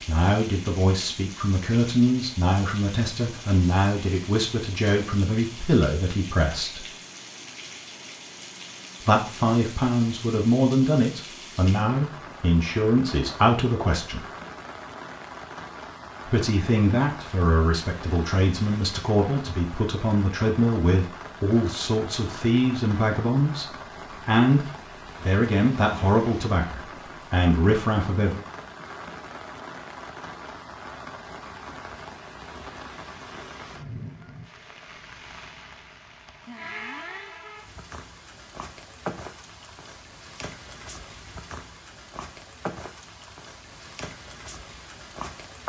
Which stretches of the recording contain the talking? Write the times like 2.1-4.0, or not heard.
0.0-6.8, 9.0-14.2, 16.2-28.4.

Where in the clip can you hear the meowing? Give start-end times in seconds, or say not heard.
not heard.